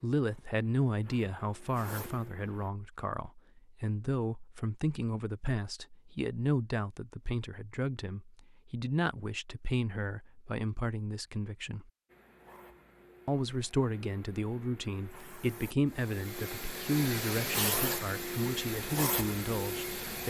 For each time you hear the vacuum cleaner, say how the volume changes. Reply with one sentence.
The vacuum cleaner can be heard briefly from 0.1 to 2.7 s; and from 12.1 to 20.2 s, getting louder.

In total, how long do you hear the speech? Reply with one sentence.
You can hear the speech for 19 seconds altogether.